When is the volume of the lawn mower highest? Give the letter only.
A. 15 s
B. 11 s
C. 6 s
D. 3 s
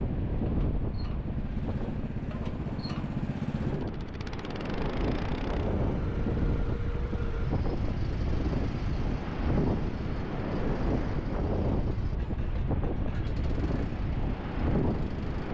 D.